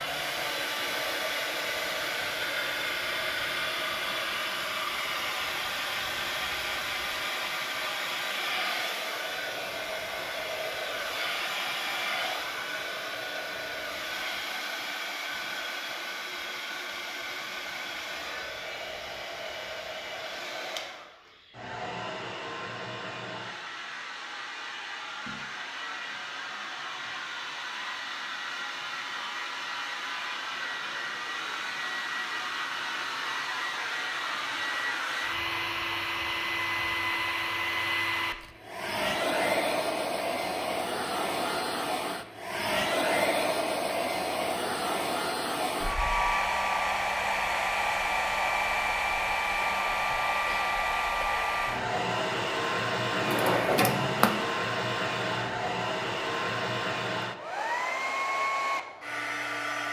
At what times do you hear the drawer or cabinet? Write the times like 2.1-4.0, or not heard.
53.1-54.5.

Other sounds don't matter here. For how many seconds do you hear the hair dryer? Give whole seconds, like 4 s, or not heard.
60 s.